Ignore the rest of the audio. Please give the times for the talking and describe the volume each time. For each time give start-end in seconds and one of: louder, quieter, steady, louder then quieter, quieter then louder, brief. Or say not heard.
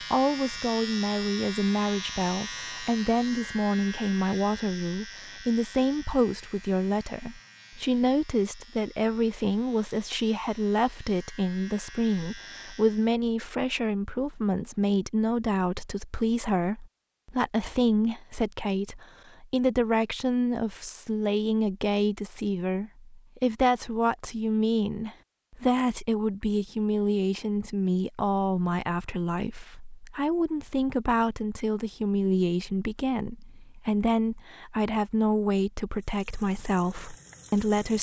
0.0-37.9 steady.